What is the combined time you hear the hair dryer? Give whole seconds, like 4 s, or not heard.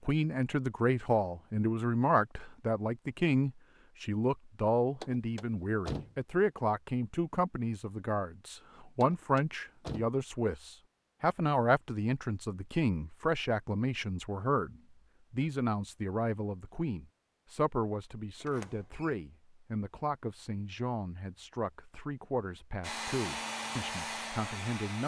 2 s.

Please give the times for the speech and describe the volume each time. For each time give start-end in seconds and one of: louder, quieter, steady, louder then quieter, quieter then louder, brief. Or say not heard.
0.1-25.0 quieter.